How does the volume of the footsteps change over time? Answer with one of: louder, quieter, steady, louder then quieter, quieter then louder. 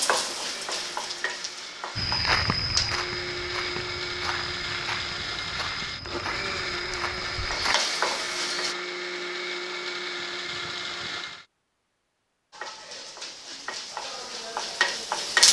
quieter.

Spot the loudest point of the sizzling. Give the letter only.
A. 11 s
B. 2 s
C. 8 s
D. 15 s
D.